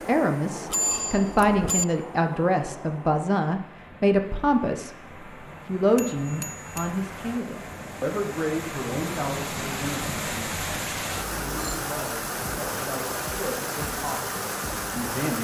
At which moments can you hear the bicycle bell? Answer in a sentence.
You can hear the bicycle bell from 0.7 to 1.9 s, from 6.0 to 6.9 s and from 11.2 to 11.8 s.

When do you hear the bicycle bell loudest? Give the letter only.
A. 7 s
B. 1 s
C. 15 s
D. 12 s
B.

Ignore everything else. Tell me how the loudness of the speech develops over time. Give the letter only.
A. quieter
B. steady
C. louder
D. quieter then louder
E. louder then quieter
A.